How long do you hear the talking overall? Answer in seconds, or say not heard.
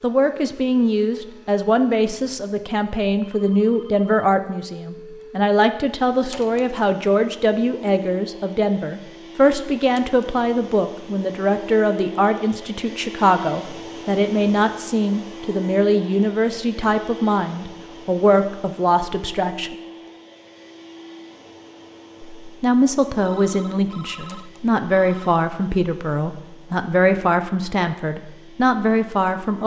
27 s.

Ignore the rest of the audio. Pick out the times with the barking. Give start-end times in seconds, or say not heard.
not heard.